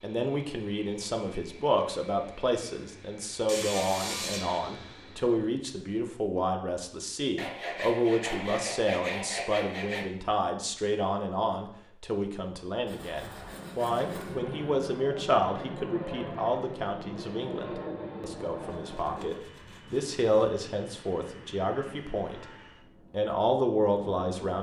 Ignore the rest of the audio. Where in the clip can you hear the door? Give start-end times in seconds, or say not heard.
not heard.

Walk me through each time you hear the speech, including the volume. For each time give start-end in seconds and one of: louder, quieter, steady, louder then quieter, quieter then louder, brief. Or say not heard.
0.0-22.4 steady
23.1-24.5 brief.